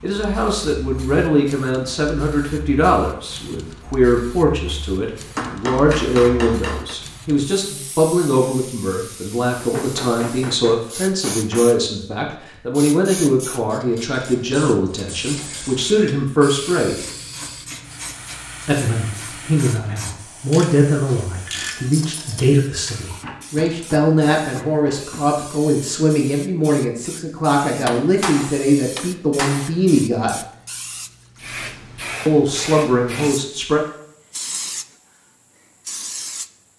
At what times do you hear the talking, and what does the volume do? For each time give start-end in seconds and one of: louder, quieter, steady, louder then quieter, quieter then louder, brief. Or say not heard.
0.0-16.9 steady
18.6-30.4 steady
32.2-33.9 brief.